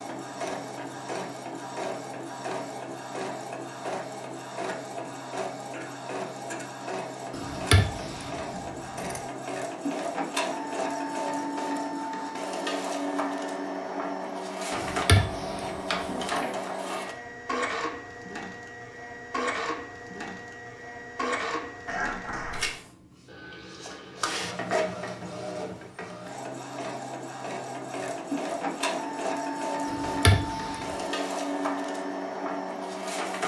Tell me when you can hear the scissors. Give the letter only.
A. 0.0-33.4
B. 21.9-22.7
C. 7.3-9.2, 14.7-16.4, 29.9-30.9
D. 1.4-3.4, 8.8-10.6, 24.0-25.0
C.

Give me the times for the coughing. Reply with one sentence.
The coughing can be heard from 21.9 to 22.7 s.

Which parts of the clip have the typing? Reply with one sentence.
The typing can't be heard in this clip.